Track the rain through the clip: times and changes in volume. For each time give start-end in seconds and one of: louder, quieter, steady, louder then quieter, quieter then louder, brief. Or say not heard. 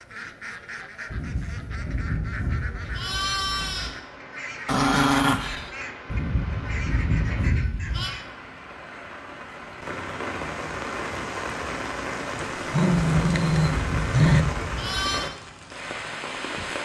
3.0-16.8 louder.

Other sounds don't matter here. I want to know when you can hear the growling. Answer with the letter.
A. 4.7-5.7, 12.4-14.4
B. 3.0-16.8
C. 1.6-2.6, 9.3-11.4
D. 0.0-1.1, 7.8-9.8
A.